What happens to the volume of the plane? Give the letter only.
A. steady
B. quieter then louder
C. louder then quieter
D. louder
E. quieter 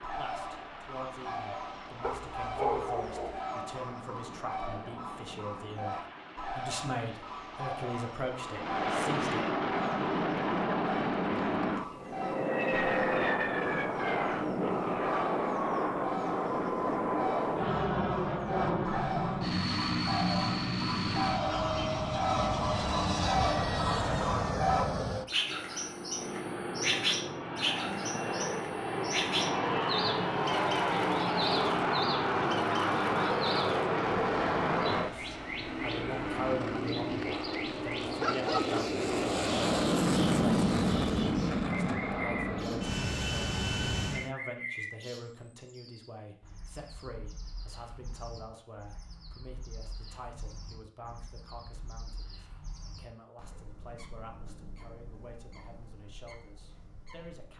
D.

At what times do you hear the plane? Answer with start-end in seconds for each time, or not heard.
0.0-44.3.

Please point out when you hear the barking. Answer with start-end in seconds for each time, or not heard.
2.0-3.4, 36.9-38.9.